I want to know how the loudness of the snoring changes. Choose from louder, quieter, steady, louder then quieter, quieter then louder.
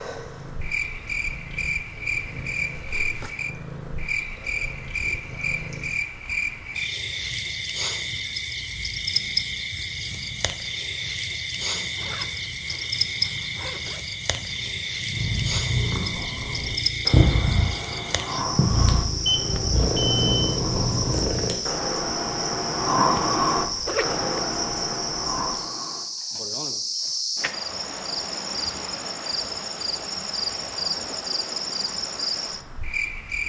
louder then quieter.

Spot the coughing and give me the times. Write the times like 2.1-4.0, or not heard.
not heard.